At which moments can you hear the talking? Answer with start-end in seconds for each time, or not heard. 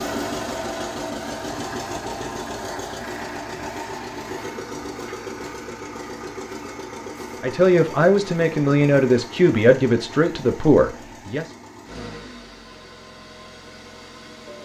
7.4-11.4.